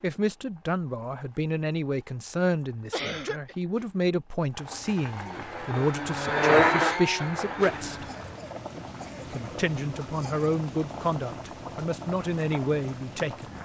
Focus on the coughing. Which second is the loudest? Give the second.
3 s.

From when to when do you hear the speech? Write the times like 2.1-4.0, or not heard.
0.0-8.1, 9.3-13.6.